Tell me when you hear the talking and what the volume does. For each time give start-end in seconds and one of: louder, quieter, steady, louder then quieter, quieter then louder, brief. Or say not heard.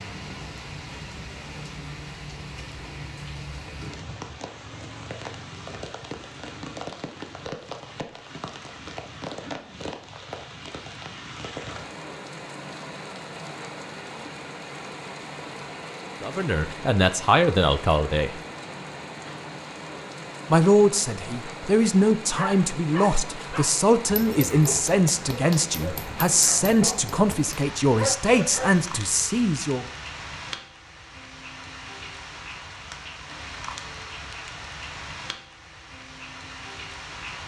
16.2-18.4 brief
20.5-29.9 steady.